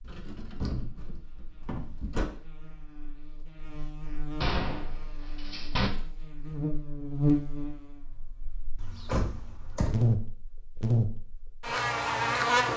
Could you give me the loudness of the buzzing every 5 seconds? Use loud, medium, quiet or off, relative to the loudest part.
quiet, medium, loud.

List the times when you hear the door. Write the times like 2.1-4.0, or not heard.
0.1-2.3, 4.4-5.9, 8.8-10.2.